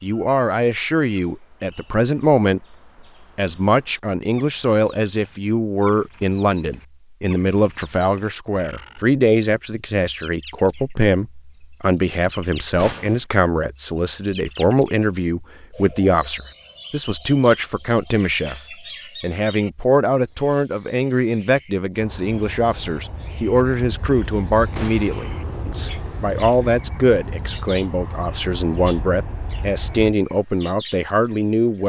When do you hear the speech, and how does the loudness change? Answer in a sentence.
You can hear the speech briefly from 0.0 to 2.8 s; and from 3.4 to 31.8 s, at a steady volume.